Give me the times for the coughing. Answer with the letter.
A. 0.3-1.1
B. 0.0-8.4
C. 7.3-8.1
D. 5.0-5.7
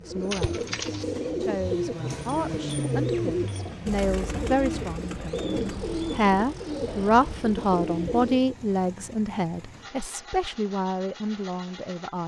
A.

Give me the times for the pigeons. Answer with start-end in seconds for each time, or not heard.
0.0-8.4.